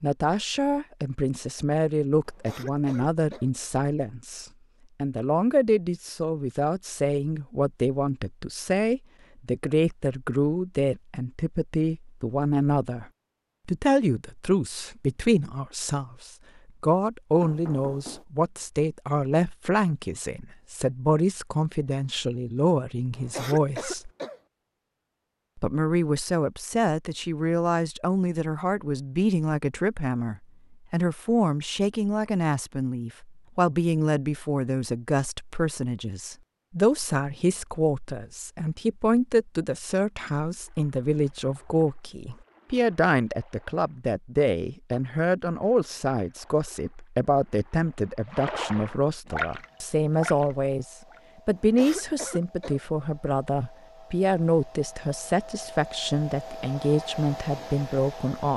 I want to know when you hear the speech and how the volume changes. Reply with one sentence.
The speech can be heard from 0.0 to 13.1 s, at a steady volume; from 13.7 to 24.1 s, at a steady volume; and from 25.6 to 58.5 s, at a steady volume.